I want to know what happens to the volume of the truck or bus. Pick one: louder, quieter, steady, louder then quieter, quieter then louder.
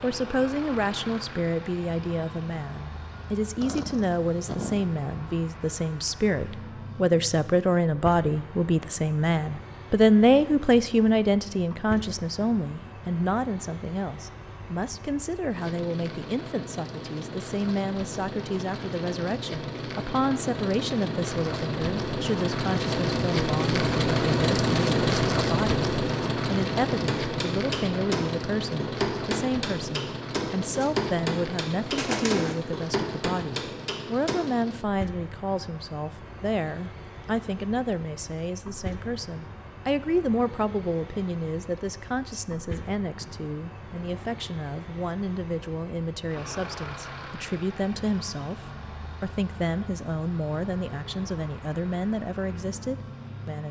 louder then quieter.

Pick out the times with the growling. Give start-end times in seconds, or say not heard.
3.6-4.8.